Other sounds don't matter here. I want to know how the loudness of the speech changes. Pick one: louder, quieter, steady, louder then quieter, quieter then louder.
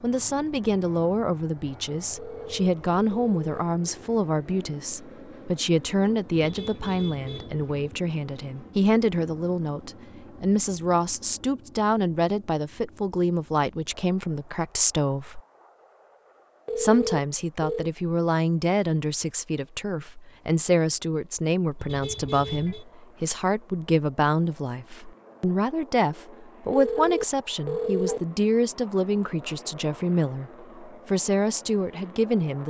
steady.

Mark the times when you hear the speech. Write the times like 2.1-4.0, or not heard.
0.0-15.4, 16.8-32.6.